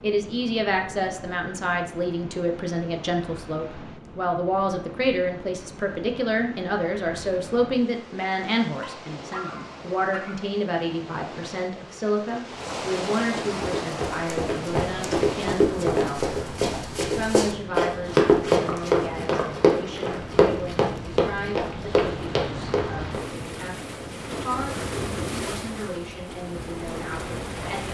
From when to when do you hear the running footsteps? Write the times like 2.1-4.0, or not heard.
13.4-23.3.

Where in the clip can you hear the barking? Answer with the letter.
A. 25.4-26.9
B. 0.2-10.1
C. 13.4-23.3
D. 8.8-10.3
D.